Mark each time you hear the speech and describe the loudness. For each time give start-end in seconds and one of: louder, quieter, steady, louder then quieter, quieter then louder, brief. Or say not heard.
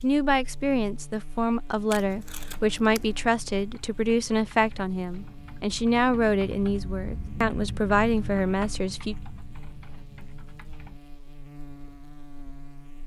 0.0-9.2 steady.